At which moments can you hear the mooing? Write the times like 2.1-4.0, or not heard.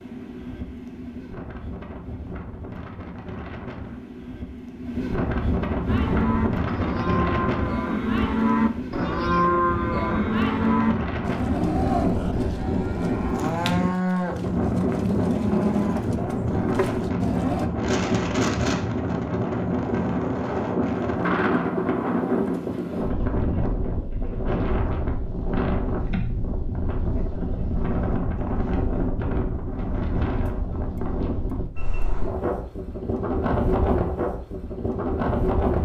5.8-17.7.